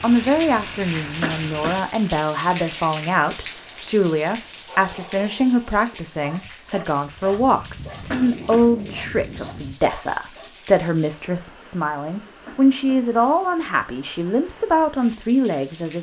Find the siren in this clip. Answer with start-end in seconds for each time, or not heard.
not heard.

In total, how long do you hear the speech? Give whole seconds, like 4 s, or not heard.
16 s.